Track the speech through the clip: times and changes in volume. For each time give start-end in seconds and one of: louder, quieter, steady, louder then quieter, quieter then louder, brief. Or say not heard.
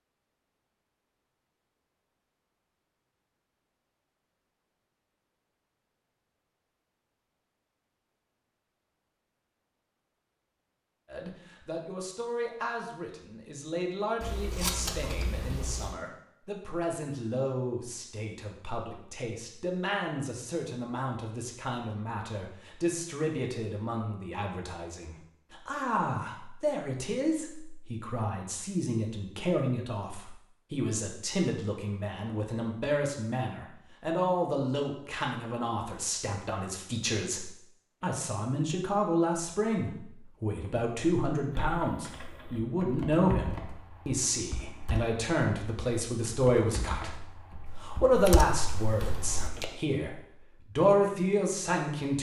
11.1-52.1 louder.